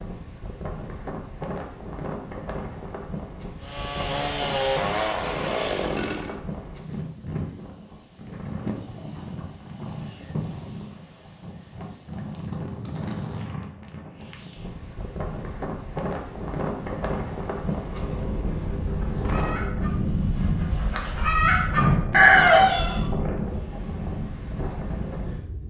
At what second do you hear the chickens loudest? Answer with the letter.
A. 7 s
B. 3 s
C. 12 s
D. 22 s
D.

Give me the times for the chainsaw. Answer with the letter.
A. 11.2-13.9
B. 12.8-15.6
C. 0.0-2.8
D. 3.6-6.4
D.